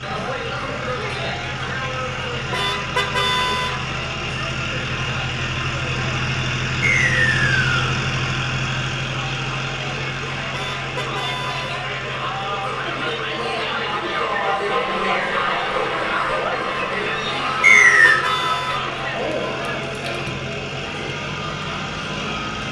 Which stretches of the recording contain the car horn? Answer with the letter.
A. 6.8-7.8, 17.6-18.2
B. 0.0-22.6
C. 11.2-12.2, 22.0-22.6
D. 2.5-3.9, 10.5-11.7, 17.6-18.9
D.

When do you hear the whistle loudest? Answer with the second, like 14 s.
18 s.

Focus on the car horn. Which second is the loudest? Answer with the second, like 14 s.
3 s.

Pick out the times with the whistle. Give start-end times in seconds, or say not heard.
6.8-7.8, 17.6-18.2.